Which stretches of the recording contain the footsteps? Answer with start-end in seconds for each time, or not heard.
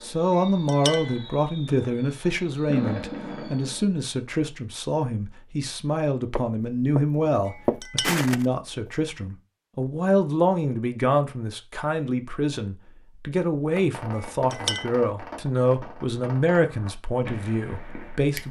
6.3-8.9.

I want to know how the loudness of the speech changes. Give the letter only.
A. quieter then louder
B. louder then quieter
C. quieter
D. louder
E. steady
E.